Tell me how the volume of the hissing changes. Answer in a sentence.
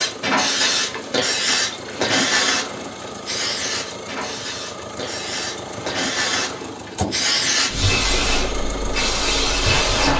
The loudness of the hissing goes down, then up.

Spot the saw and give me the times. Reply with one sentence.
You can't hear the saw here.